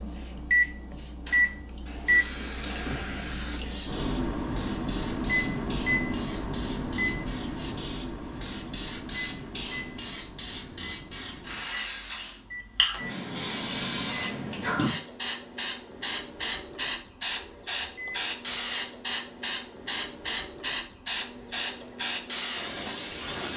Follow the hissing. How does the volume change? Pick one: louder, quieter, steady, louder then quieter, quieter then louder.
louder.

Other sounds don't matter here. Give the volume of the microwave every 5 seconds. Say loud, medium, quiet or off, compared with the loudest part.
loud, loud, quiet, quiet, quiet.